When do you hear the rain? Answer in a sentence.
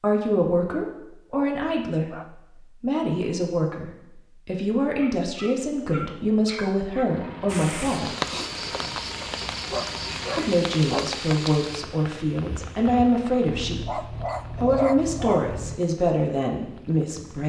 The rain can be heard from 7.5 to 17.4 s.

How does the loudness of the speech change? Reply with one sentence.
The loudness of the speech stays about the same.